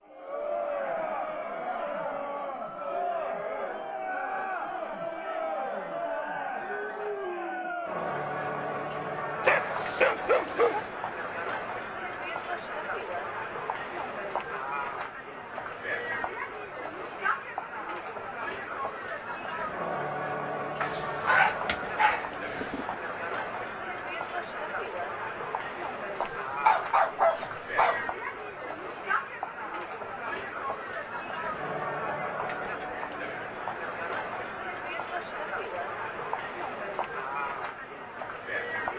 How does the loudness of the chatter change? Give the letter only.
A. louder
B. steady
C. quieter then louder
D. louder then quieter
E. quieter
B.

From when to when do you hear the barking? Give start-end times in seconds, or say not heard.
9.4-10.9, 20.8-22.9, 26.2-28.1.